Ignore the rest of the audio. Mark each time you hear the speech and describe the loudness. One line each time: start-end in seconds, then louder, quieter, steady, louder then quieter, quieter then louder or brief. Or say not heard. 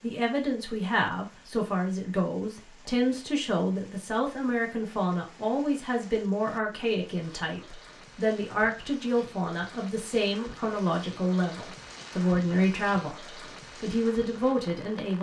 0.0-15.1 steady.